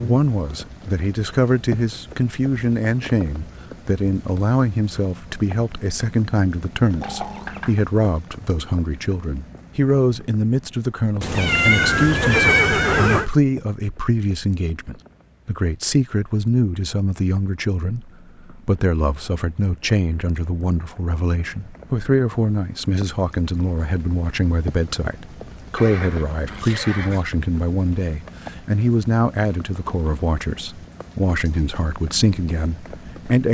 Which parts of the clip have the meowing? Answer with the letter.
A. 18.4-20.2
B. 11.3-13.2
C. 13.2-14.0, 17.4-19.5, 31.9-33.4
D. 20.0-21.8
B.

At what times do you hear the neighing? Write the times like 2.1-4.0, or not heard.
7.0-7.8, 11.2-13.3, 25.8-27.2.